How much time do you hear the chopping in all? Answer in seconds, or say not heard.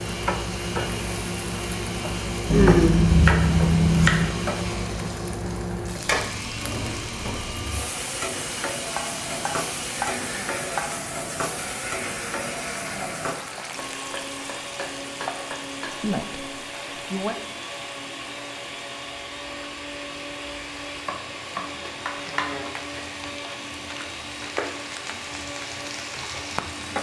8 s.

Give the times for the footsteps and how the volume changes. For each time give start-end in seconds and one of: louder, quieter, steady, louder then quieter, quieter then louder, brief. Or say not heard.
not heard.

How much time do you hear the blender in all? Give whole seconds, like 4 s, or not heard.
27 s.